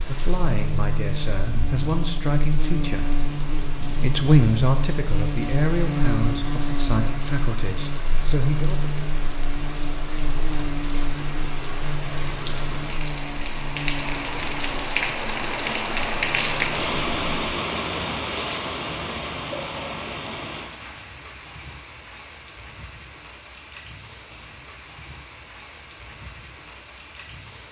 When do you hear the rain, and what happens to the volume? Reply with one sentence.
The rain can be heard from 0.0 to 27.6 s, getting louder then quieter.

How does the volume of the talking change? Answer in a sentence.
The loudness of the talking goes up, then down.